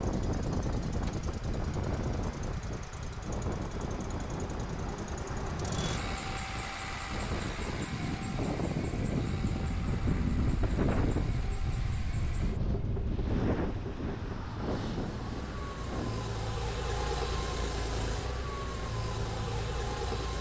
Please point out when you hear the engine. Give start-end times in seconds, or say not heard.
0.0-20.3.